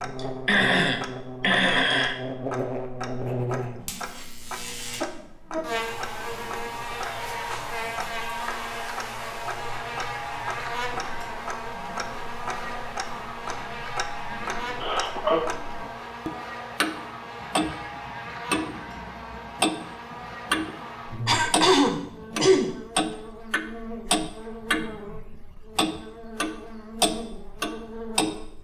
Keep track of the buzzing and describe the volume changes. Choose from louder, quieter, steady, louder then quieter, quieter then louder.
quieter.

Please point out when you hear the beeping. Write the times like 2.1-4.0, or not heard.
not heard.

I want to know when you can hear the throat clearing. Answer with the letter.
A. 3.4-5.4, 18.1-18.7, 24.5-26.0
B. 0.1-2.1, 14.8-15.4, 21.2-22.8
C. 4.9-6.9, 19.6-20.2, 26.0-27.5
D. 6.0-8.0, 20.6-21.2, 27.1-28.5
B.